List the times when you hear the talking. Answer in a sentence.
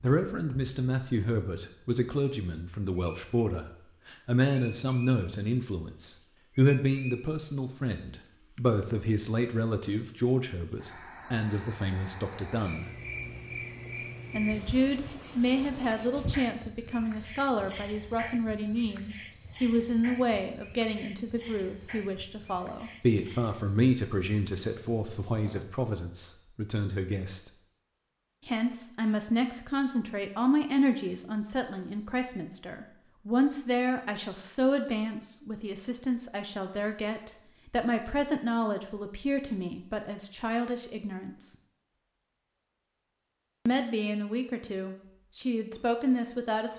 The talking can be heard from 0.0 to 12.9 s, from 14.3 to 27.5 s, from 28.4 to 41.5 s and from 43.6 to 46.7 s.